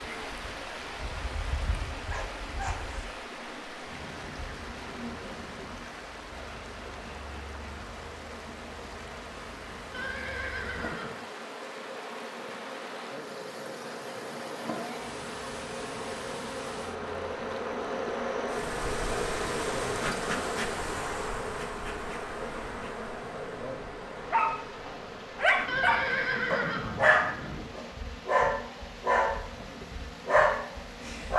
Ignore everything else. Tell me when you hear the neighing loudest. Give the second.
26 s.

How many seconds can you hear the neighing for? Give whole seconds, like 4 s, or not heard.
3 s.